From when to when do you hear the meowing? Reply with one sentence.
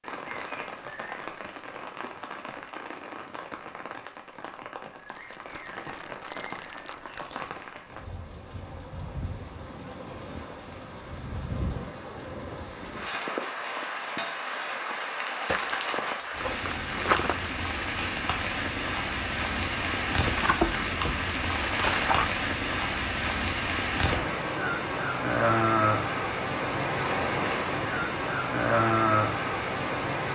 You can't hear the meowing here.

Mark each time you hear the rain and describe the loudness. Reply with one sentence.
You can hear the rain from 0.0 to 30.2 s, getting louder.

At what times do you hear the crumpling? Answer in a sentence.
The crumpling can be heard from 5.0 to 7.5 s, from 15.4 to 17.5 s and from 20.4 to 22.4 s.